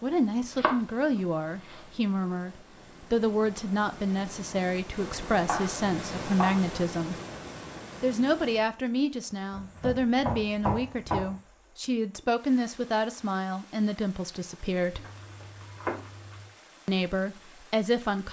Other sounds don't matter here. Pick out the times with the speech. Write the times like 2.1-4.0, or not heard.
0.0-7.2, 8.0-15.1, 16.9-18.2.